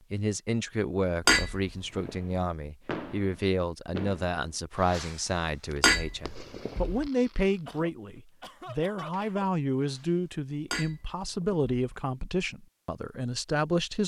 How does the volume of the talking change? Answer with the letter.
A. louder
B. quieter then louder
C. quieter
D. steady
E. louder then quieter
D.